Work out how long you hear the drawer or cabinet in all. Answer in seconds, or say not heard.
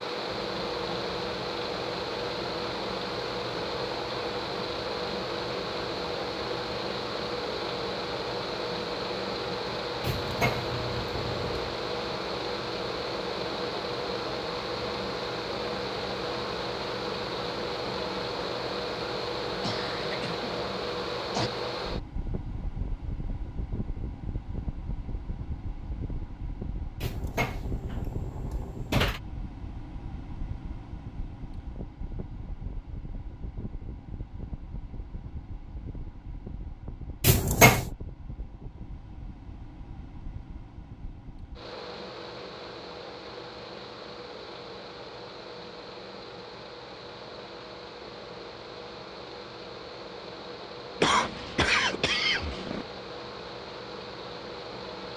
5 s.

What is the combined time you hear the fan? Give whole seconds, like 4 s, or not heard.
55 s.